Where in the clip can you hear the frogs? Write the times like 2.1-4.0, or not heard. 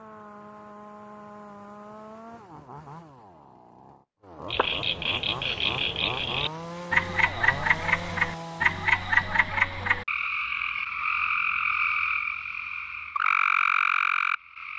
4.5-14.7.